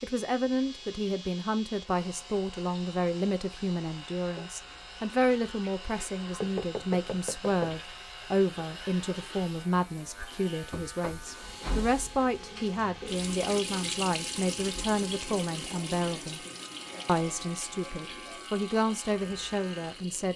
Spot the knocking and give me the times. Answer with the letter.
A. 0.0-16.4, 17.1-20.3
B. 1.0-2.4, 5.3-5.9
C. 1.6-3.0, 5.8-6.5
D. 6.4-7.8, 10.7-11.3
D.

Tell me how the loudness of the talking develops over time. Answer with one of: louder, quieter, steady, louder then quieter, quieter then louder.
steady.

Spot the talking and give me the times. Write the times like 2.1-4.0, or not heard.
0.0-16.4, 17.1-20.3.